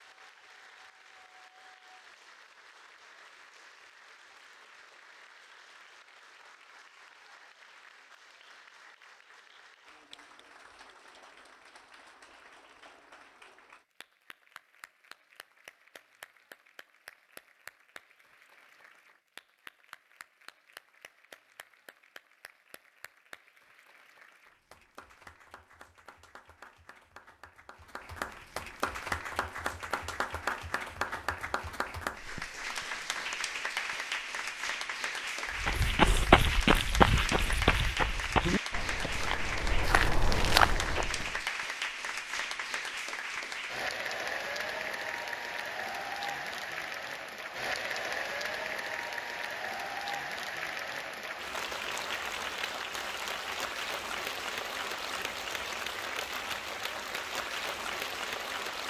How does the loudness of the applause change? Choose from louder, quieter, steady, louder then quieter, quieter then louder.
louder.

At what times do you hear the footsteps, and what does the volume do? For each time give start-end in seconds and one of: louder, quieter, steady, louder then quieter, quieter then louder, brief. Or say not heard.
35.6-41.5 quieter then louder.